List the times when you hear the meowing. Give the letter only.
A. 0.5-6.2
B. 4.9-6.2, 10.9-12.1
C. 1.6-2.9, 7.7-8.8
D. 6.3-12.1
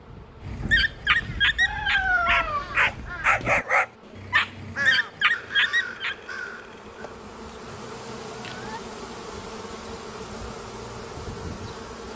C.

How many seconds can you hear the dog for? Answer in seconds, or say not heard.
6 s.